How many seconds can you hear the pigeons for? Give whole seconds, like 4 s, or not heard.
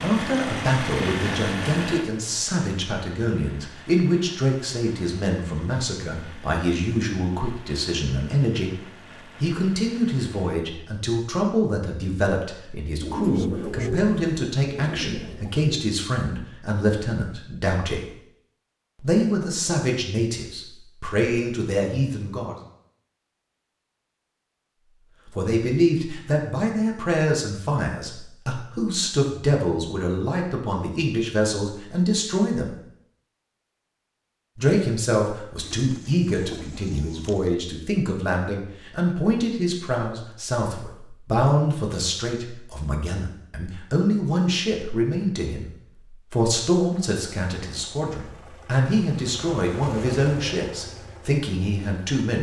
5 s.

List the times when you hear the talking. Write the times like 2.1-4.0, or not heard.
0.0-8.8, 9.4-18.1, 19.0-22.6, 25.2-32.8, 34.5-52.3.